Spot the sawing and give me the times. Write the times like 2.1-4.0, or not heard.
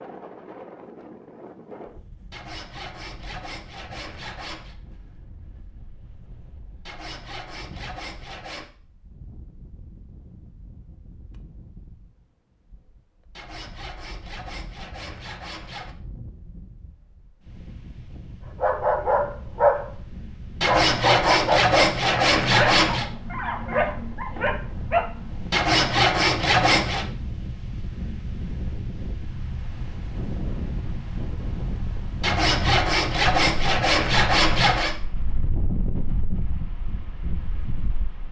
2.3-4.8, 6.8-8.7, 13.3-15.9, 20.6-23.1, 25.5-27.1, 32.2-35.0.